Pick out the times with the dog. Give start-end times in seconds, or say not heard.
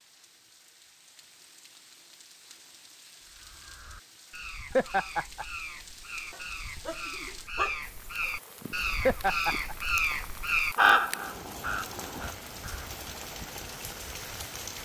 6.3-8.6.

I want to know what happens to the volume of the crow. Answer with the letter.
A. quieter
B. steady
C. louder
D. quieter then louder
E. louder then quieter
C.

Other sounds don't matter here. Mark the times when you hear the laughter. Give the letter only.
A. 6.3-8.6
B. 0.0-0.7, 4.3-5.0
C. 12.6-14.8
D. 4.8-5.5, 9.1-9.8
D.